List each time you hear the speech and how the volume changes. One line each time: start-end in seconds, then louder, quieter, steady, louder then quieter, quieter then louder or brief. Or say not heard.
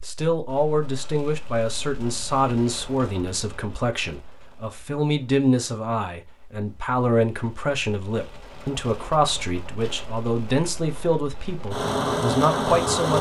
0.1-13.1 steady.